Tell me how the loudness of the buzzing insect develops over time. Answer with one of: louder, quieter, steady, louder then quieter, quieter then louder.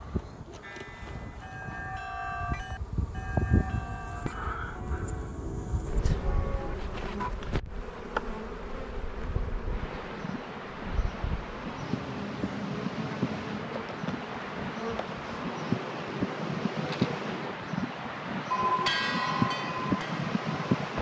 steady.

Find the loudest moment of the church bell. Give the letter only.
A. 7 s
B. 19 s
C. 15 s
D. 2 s
B.